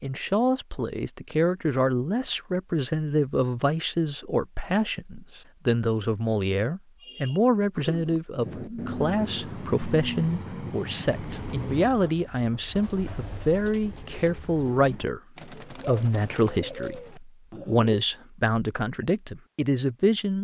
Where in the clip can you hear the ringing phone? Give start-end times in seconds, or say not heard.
not heard.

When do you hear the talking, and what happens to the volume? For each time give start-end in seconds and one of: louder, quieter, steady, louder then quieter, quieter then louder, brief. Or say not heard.
0.0-20.3 steady.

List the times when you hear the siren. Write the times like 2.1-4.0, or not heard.
not heard.